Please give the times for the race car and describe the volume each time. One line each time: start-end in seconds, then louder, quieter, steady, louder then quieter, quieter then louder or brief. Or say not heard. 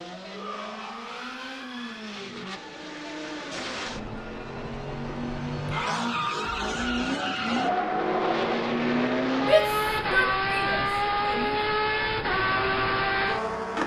0.0-13.8 louder.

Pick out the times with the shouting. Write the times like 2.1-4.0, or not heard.
0.2-2.2, 5.7-6.8, 9.4-11.6.